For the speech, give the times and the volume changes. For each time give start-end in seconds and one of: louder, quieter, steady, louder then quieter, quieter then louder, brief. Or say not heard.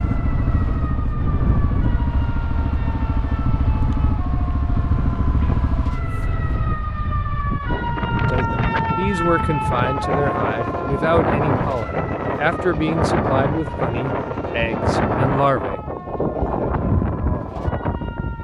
8.3-15.8 steady.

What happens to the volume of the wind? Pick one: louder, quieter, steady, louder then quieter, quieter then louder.
louder.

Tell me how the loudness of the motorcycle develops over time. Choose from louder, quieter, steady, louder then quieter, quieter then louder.
steady.